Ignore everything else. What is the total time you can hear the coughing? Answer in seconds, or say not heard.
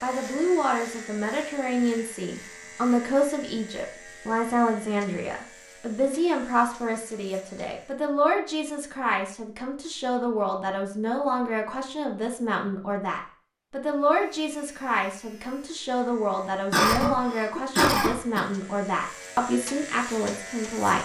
2 s.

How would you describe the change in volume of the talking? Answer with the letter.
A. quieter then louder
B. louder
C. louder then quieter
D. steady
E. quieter
D.